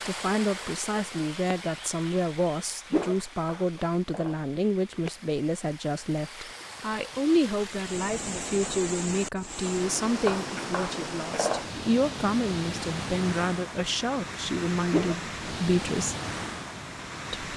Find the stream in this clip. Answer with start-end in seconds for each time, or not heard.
0.0-17.5.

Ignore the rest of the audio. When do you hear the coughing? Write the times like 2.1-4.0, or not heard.
not heard.